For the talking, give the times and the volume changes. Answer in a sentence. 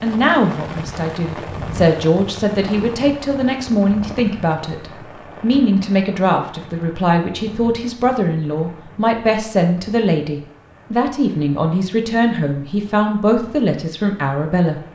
You can hear the talking from 0.0 to 14.8 s, at a steady volume.